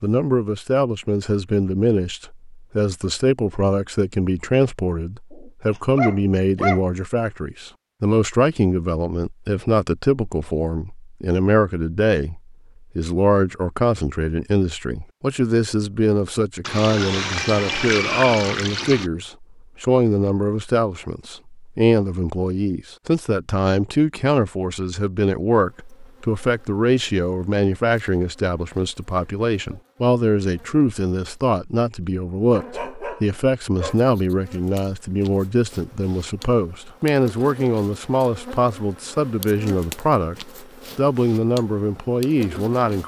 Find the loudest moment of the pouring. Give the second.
18 s.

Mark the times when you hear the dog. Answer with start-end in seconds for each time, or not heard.
5.3-6.8, 32.5-34.0.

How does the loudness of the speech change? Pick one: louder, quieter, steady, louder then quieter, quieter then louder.
steady.